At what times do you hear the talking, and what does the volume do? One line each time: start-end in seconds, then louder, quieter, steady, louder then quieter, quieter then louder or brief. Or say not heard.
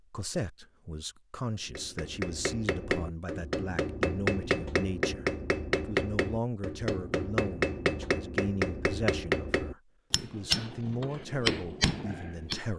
0.1-12.7 steady.